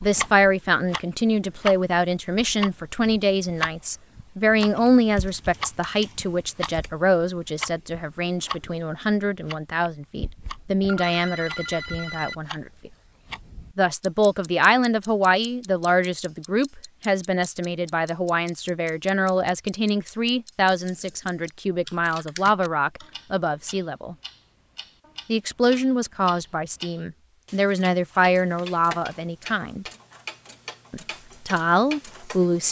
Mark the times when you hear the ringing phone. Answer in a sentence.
You can hear the ringing phone from 10.8 to 12.3 s.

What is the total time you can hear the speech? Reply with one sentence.
You can hear the speech for 30 seconds altogether.